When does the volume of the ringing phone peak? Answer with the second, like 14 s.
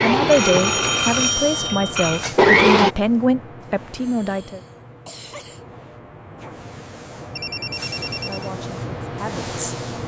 1 s.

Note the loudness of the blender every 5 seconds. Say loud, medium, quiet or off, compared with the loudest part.
loud, off.